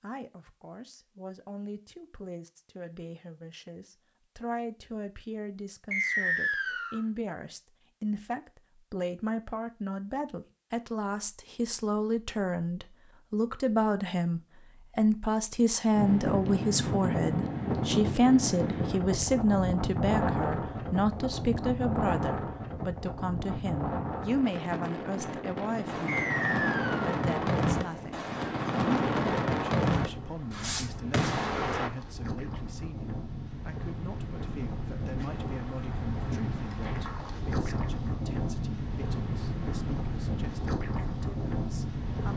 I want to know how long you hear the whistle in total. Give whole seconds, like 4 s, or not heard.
2 s.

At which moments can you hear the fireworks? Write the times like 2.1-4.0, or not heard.
25.9-31.9.